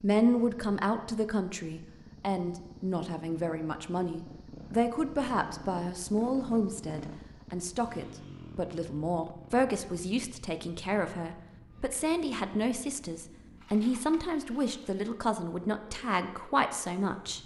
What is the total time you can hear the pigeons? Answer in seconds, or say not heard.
not heard.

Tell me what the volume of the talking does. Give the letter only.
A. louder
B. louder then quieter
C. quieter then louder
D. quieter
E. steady
E.